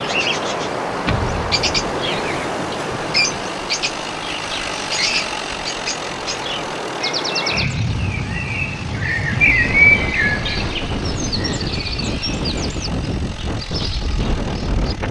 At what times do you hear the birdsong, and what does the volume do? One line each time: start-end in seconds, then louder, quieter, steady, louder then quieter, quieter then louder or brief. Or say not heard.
0.0-14.9 louder then quieter.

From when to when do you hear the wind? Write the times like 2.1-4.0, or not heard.
0.0-15.0.